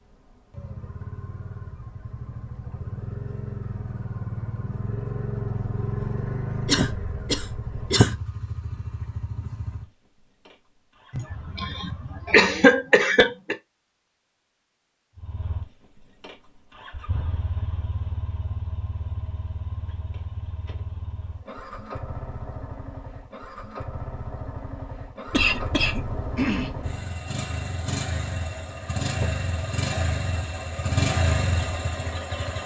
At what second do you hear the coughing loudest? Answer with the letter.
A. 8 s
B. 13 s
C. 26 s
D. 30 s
B.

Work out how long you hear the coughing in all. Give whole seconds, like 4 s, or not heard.
6 s.